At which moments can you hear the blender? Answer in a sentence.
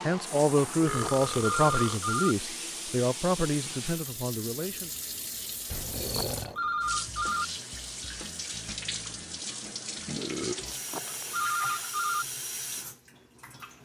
The blender can't be heard in this clip.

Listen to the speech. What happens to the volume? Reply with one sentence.
The volume of the speech goes down.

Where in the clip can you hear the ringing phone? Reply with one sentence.
You can hear the ringing phone from 0.6 to 2.4 s, from 5.7 to 7.5 s and from 10.4 to 12.2 s.